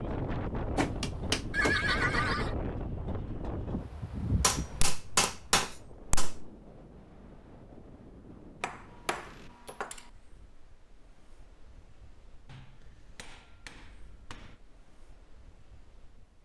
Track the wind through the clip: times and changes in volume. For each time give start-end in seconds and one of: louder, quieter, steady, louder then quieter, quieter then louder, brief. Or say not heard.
0.0-16.3 quieter.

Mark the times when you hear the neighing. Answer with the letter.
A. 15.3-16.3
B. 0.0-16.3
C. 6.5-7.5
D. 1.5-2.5
D.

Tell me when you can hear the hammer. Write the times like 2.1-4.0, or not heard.
0.8-1.8, 4.4-6.5, 8.6-10.1, 12.4-14.6.